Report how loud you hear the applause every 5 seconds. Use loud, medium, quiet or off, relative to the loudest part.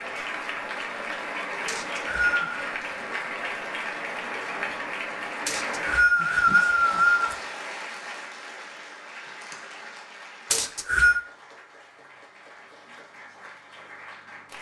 loud, loud, quiet.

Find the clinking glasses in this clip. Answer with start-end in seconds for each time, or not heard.
not heard.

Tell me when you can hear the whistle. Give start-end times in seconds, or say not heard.
1.6-2.6, 5.5-7.3, 10.5-11.2.